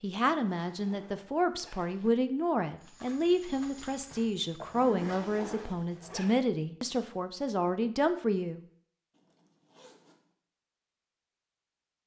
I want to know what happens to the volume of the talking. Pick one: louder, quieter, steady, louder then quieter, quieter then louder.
steady.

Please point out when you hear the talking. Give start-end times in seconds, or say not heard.
0.0-8.6.